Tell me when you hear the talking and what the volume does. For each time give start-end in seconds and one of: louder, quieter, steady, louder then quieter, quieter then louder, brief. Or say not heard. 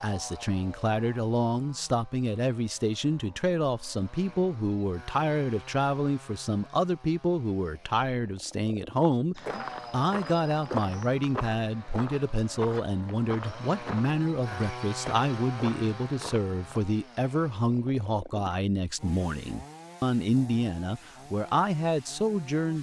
0.0-22.7 steady.